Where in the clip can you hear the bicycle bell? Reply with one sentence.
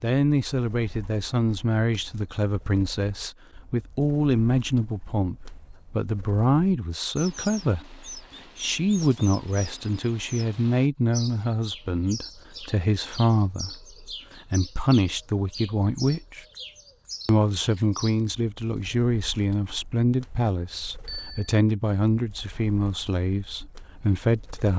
The bicycle bell can be heard from 21.1 to 21.6 s.